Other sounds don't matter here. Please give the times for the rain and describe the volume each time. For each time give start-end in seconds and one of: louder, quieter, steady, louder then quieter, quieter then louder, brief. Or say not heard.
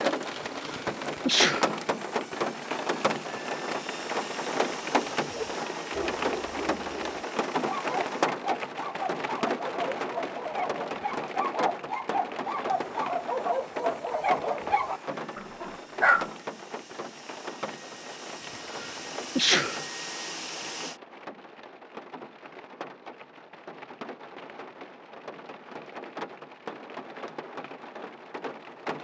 0.0-28.9 quieter.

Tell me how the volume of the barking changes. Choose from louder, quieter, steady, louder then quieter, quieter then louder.
louder.